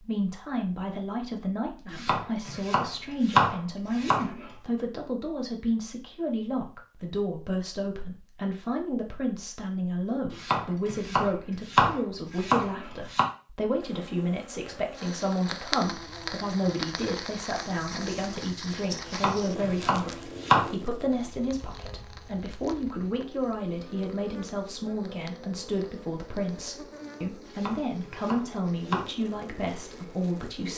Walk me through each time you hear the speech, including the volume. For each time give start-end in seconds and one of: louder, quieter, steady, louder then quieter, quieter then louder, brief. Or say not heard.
0.0-30.7 steady.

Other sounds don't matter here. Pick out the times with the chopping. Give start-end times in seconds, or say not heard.
1.9-4.5, 10.3-13.2, 19.1-20.7, 27.4-29.1.